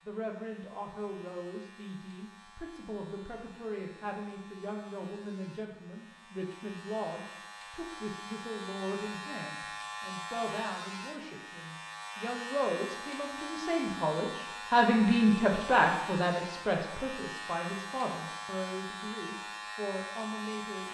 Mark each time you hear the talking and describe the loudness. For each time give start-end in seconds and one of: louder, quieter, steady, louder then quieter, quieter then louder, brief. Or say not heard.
0.1-20.8 louder then quieter.